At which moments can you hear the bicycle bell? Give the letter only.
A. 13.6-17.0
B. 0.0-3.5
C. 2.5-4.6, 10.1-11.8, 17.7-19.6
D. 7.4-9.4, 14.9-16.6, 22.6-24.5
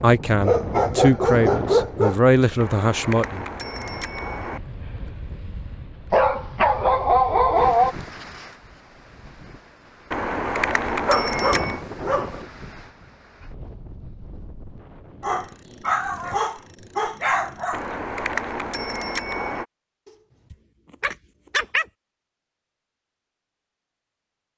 C.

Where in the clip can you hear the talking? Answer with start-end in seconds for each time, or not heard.
0.0-3.5.